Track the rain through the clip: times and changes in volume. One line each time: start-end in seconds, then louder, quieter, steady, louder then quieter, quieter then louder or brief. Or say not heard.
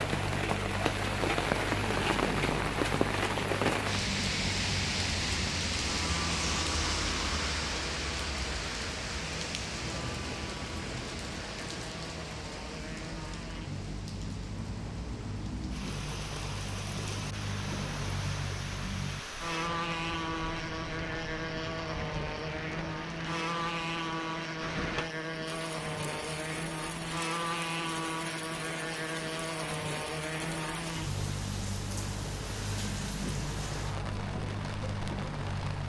0.0-35.8 quieter.